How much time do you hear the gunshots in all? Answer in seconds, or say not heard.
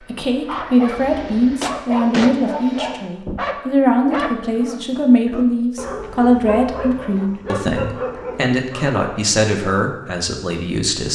2 s.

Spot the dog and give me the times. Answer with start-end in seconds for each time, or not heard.
0.5-9.0.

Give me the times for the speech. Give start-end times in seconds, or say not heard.
0.0-11.1.